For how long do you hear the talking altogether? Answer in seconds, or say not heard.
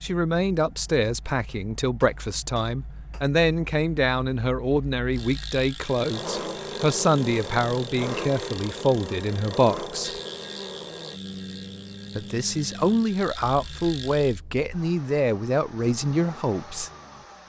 15 s.